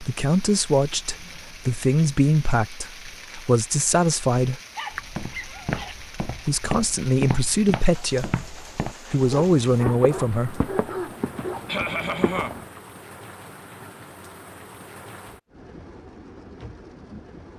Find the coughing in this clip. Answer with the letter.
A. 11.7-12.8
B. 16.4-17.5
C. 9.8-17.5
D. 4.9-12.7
A.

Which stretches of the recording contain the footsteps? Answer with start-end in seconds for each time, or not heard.
4.9-12.7.